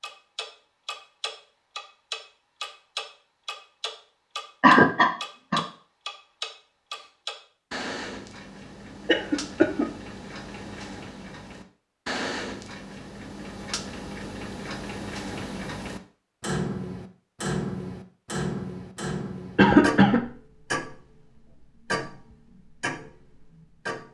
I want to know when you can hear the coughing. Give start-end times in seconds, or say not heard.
4.6-5.6, 9.1-9.9, 19.6-20.2.